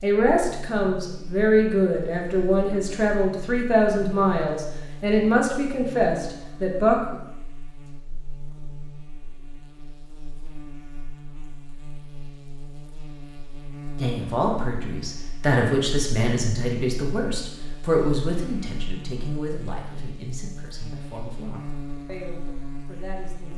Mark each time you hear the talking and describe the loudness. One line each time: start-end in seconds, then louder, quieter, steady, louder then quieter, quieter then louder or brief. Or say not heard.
0.0-7.2 steady
13.9-23.5 quieter.